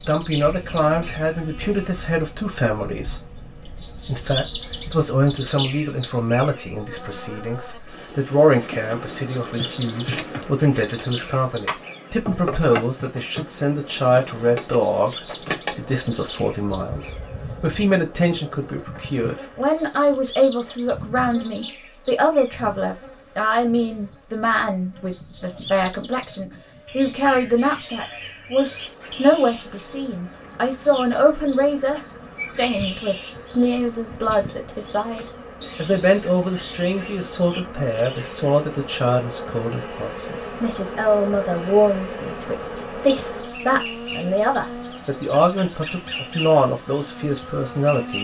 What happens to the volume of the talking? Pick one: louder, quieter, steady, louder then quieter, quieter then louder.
steady.